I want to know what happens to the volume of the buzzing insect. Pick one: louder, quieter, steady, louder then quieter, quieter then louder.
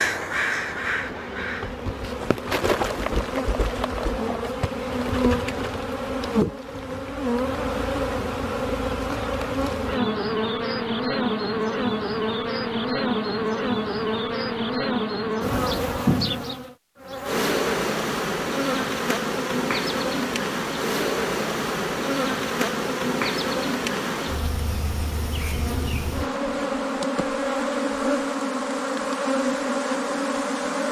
steady.